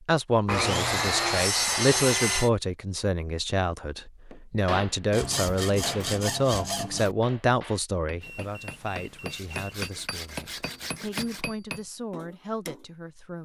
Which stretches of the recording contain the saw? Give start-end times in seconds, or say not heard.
0.5-2.5, 5.1-7.2, 9.3-11.4.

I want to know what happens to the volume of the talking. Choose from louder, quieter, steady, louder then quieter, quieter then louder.
quieter.